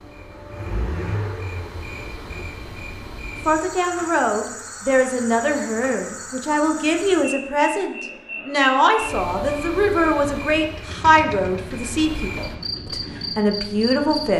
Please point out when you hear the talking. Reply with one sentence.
The talking can be heard from 3.5 to 14.3 s.